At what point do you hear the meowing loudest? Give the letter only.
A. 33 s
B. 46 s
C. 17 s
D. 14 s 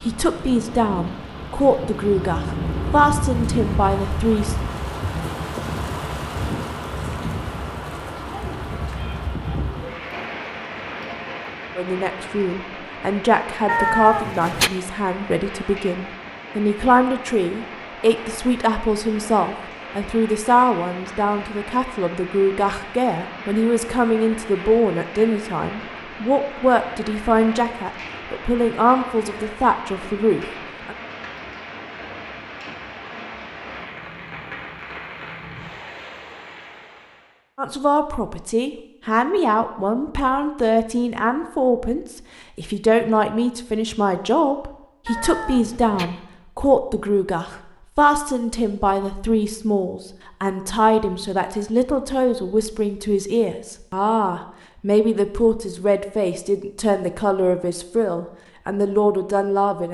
D.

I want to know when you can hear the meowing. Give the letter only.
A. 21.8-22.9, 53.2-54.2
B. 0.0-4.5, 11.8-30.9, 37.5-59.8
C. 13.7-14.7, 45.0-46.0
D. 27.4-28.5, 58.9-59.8
C.